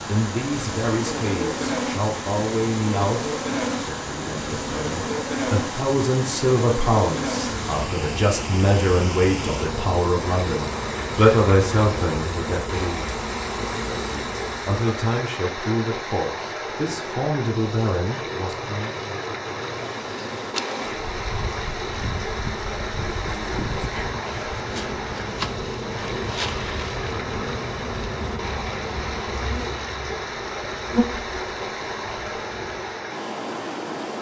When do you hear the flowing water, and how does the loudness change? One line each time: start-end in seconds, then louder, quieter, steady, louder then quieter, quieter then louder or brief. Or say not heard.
0.0-34.1 steady.